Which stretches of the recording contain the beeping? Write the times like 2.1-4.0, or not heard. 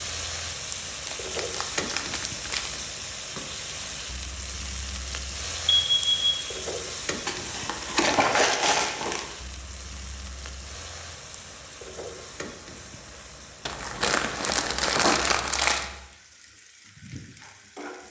5.7-6.5.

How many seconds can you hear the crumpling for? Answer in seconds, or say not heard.
6 s.